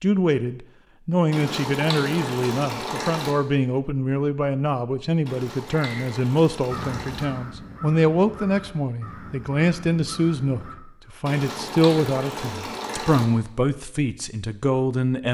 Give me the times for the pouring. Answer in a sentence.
You can hear the pouring from 1.3 to 3.4 s, from 5.2 to 7.2 s and from 11.2 to 13.2 s.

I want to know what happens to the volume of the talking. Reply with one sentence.
The loudness of the talking stays about the same.